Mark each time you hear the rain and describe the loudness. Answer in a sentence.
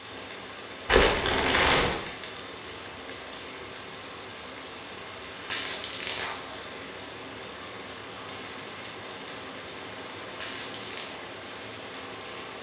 You can hear the rain from 0.0 to 12.5 s, at a steady volume.